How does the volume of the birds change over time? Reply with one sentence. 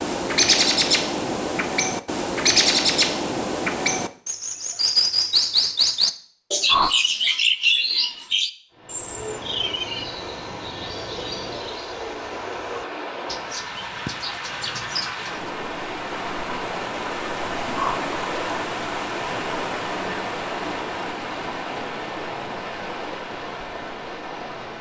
The loudness of the birds goes down.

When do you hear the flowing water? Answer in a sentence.
You can hear the flowing water from 8.7 to 24.7 s.